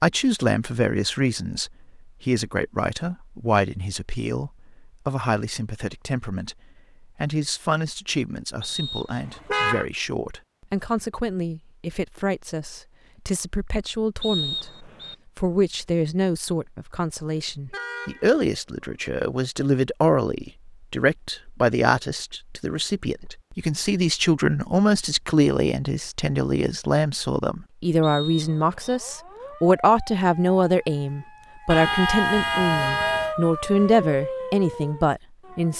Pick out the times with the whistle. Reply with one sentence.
You can hear the whistle from 8.6 to 9.2 s, from 14.2 to 15.2 s and from 28.0 to 29.0 s.